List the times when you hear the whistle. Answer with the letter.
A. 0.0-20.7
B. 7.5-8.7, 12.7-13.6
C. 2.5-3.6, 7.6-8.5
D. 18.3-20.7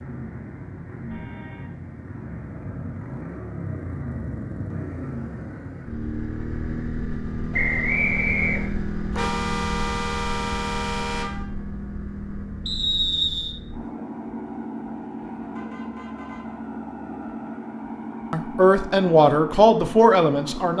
B.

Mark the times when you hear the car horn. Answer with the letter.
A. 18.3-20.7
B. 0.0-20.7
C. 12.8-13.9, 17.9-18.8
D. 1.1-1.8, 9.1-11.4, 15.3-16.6
D.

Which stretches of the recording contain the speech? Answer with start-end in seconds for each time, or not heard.
18.3-20.7.